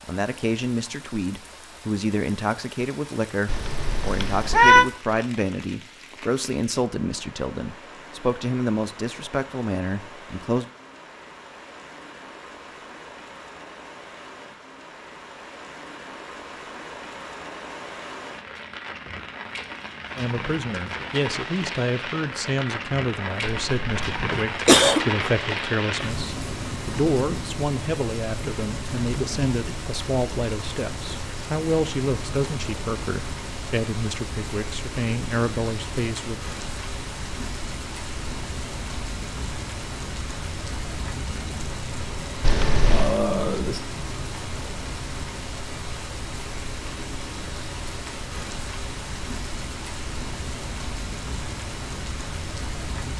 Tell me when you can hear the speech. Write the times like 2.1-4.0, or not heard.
0.1-10.7, 20.1-36.4.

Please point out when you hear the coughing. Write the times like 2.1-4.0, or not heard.
24.3-25.1.